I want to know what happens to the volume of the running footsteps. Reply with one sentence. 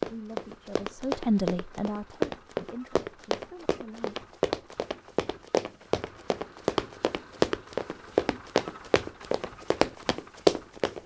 The loudness of the running footsteps goes up.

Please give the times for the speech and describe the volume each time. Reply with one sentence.
The speech can be heard from 0.0 to 4.2 s, getting louder then quieter.